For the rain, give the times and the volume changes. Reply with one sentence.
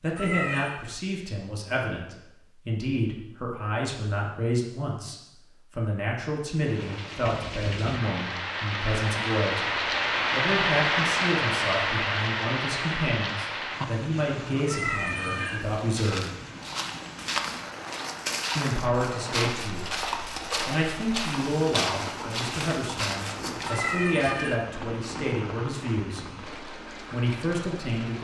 The rain can be heard from 6.5 to 28.1 s, getting quieter.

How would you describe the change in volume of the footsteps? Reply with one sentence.
The loudness of the footsteps stays about the same.